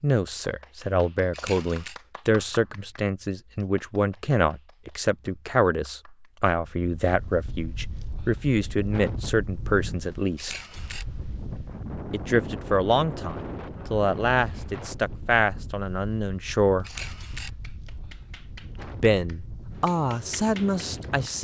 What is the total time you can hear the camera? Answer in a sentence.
The camera can be heard for 2 seconds in total.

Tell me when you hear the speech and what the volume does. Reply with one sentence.
You can hear the speech from 0.0 to 10.6 s, at a steady volume; from 12.1 to 16.9 s, getting quieter; and briefly from 18.9 to 21.3 s.